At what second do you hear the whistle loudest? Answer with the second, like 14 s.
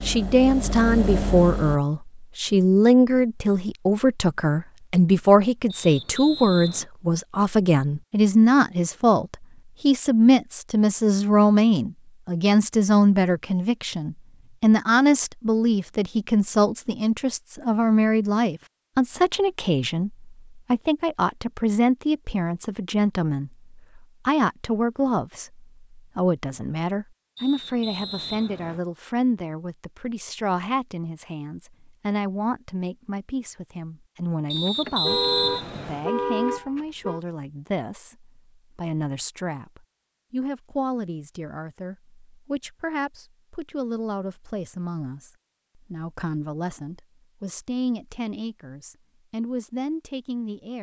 35 s.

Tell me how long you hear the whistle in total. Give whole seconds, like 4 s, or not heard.
4 s.